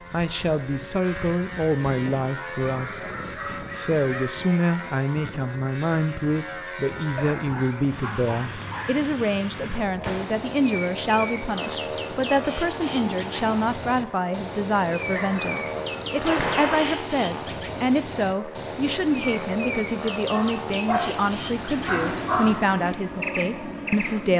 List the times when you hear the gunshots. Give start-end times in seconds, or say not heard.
10.0-10.4, 16.2-17.0.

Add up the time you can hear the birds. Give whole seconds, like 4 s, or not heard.
15 s.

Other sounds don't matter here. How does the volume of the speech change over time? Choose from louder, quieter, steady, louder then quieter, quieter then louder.
steady.